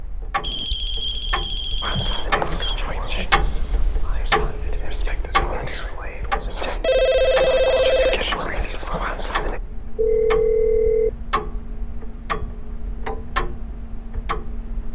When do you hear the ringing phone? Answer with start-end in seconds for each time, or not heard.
0.4-2.8, 6.8-8.2, 9.9-11.1.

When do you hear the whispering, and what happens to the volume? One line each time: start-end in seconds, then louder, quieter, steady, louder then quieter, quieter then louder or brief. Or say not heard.
1.8-9.6 quieter then louder.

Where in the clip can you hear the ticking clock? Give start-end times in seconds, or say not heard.
0.0-14.8.